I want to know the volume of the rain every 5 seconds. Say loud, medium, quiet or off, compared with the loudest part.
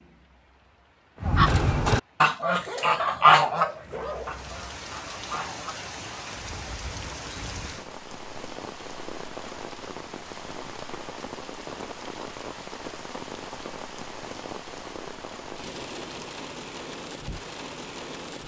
medium, loud, loud, loud.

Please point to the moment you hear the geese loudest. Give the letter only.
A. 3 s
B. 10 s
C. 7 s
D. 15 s
A.